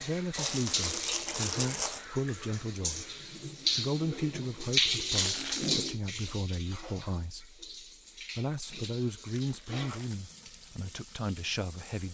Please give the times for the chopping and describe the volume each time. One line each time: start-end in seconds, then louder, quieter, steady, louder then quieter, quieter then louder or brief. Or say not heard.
not heard.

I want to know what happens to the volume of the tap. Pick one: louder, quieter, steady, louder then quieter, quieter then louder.
louder then quieter.